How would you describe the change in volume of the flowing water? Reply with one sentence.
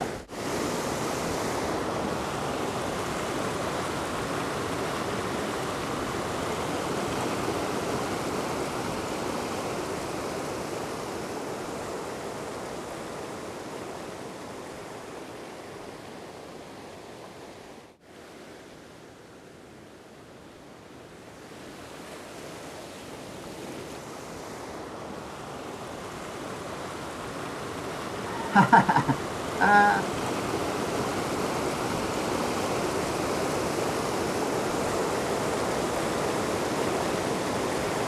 The volume of the flowing water goes down, then up.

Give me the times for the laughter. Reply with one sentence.
The laughter can be heard from 28.3 to 30.1 s.